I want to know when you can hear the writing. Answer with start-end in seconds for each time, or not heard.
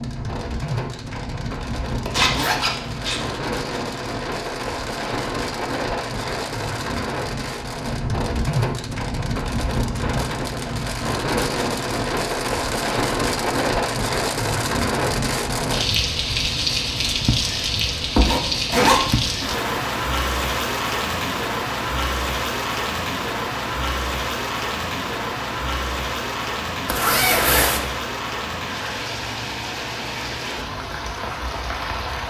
not heard.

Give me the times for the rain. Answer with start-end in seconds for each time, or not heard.
0.0-32.2.